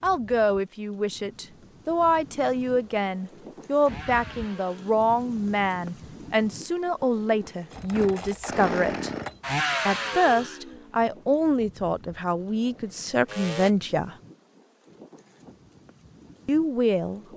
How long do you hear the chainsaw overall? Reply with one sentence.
You can hear the chainsaw for 10 seconds altogether.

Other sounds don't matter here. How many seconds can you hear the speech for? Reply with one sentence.
You can hear the speech for 14 seconds altogether.